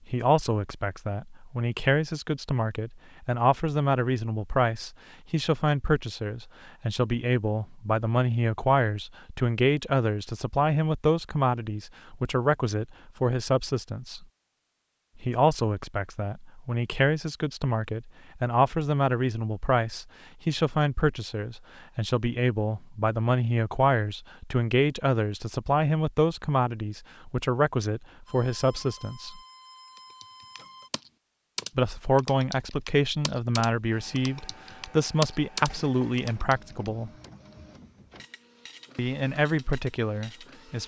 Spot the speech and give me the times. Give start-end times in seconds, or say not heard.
0.1-14.2, 15.2-29.4, 31.8-37.1, 39.0-40.8.